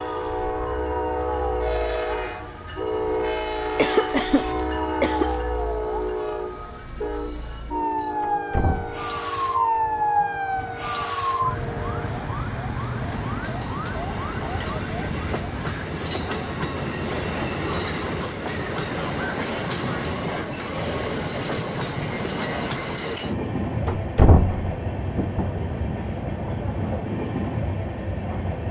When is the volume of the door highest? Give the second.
24 s.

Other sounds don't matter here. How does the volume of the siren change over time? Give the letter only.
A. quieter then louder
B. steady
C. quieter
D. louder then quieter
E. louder
D.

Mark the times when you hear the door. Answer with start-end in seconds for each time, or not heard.
8.2-9.1, 23.9-25.6.